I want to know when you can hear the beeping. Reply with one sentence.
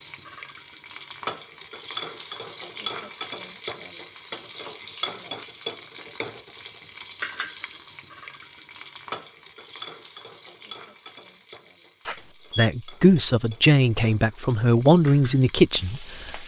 The beeping can be heard from 12.1 to 12.7 s.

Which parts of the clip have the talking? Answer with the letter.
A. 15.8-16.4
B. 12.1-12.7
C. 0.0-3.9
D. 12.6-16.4
D.